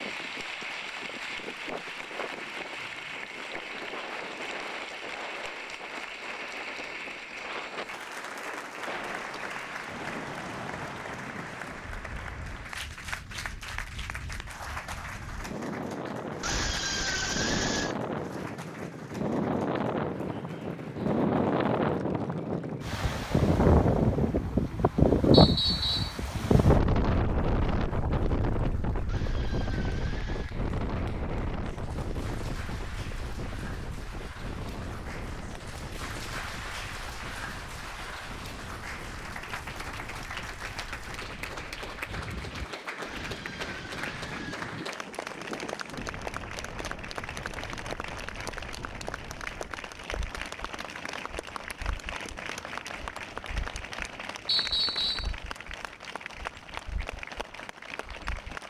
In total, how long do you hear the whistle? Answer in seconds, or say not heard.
2 s.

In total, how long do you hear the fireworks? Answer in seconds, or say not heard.
not heard.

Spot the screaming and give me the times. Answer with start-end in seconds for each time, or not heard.
16.4-17.9, 29.1-30.6, 43.0-44.6.